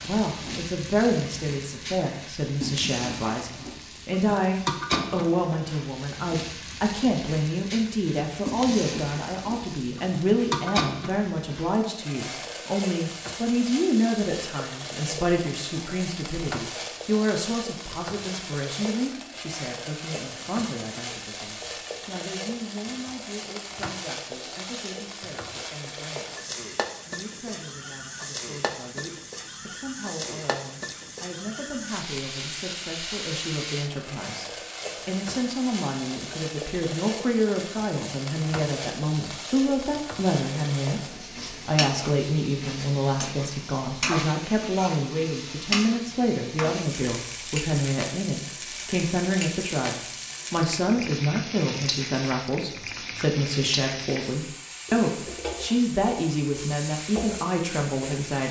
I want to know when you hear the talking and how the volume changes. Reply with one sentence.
You can hear the talking from 0.0 to 58.4 s, getting quieter then louder.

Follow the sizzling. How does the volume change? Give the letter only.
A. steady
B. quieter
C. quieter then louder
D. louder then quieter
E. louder
A.